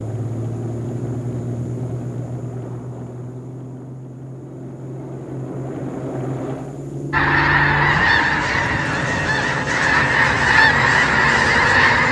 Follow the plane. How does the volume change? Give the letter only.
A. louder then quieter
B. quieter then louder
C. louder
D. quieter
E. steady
B.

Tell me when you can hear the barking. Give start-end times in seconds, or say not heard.
not heard.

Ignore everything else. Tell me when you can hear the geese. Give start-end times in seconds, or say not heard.
7.1-12.0.